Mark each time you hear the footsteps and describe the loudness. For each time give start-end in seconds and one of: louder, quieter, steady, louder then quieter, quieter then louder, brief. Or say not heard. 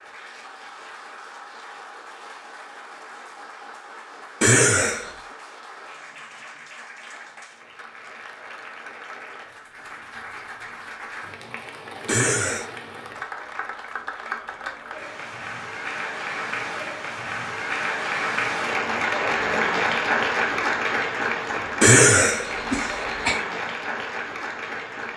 not heard.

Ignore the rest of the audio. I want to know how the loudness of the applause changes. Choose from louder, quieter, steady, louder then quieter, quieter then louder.
louder.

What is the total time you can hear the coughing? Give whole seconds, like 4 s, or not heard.
3 s.